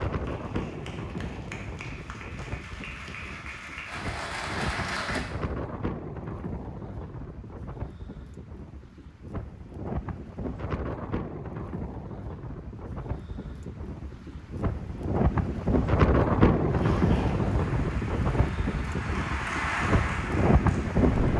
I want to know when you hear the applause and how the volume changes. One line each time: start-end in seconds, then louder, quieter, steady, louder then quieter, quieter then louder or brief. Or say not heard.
0.1-5.2 louder
16.6-21.3 louder then quieter.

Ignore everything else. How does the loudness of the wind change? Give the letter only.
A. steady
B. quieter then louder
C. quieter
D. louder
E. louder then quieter
D.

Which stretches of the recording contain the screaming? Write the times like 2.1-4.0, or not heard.
not heard.